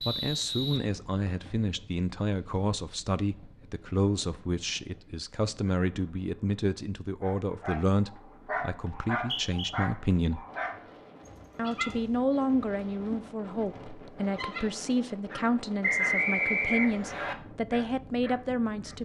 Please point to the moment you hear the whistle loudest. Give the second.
16 s.